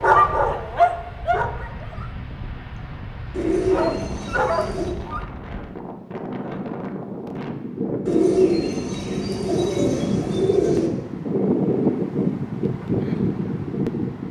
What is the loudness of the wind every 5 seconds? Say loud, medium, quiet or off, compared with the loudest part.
quiet, medium, loud.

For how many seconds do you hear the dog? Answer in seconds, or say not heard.
4 s.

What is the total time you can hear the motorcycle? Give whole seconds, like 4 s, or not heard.
not heard.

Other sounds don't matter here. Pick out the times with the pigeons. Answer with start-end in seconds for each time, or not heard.
3.3-5.0, 8.1-10.9.